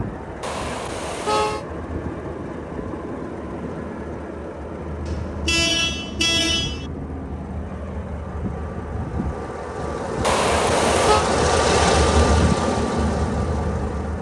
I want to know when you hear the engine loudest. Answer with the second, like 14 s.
12 s.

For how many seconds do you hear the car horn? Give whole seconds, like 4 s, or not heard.
4 s.